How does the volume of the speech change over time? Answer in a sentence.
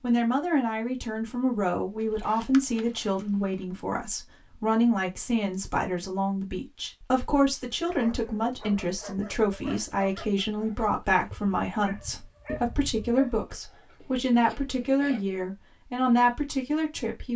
The loudness of the speech stays about the same.